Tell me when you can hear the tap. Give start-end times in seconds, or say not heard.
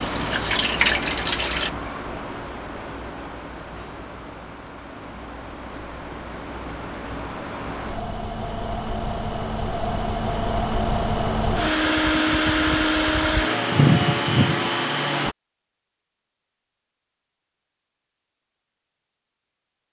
0.0-1.7.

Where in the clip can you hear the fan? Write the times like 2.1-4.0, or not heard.
0.0-15.3.